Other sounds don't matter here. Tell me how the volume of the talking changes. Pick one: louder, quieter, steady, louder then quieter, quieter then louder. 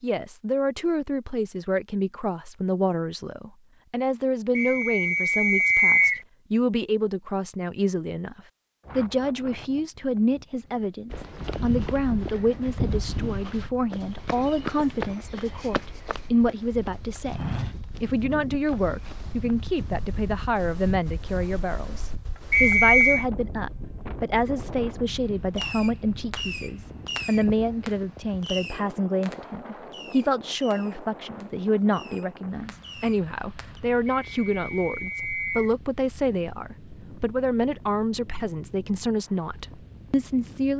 steady.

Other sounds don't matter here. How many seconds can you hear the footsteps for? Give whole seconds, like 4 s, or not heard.
8 s.